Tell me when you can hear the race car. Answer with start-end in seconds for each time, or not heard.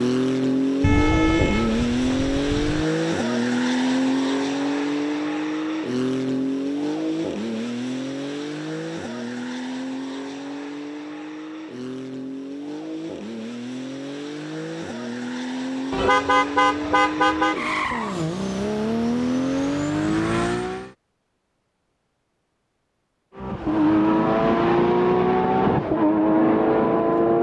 0.0-20.9, 23.4-27.3.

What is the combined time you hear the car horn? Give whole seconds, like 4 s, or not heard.
4 s.